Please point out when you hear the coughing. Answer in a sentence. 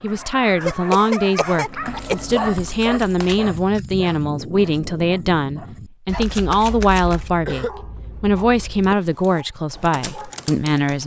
The coughing can be heard from 0.6 to 2.1 s and from 7.0 to 8.9 s.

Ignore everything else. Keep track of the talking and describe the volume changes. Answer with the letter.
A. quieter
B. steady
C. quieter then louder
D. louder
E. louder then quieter
B.